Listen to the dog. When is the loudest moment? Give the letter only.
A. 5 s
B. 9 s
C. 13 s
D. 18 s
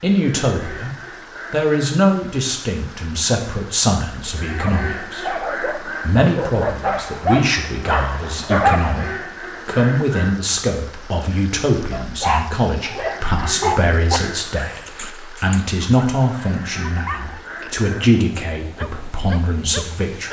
B.